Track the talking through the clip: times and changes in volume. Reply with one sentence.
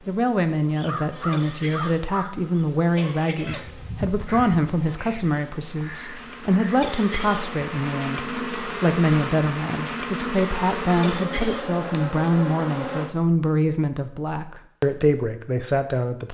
You can hear the talking from 0.1 to 16.2 s, at a steady volume.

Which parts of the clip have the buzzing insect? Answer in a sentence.
You can hear the buzzing insect from 0.0 to 13.1 s.